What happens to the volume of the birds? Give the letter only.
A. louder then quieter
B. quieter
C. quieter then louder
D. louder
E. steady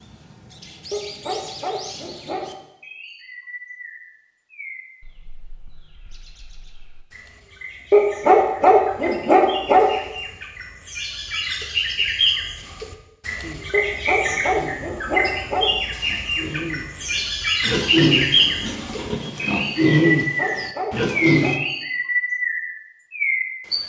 D.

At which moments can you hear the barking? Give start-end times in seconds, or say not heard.
0.9-2.5, 7.9-9.9, 13.7-15.7, 20.1-21.6.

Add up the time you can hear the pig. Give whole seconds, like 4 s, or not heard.
8 s.